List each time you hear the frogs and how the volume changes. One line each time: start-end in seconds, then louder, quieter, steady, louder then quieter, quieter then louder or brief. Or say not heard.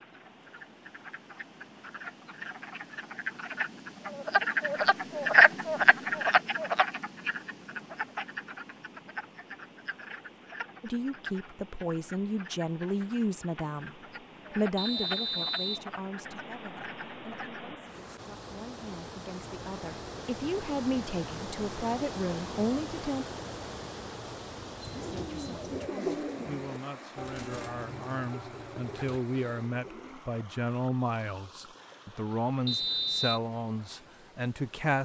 0.0-17.8 louder then quieter.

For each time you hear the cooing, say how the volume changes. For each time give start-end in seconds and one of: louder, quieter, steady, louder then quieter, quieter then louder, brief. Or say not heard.
24.8-30.2 quieter.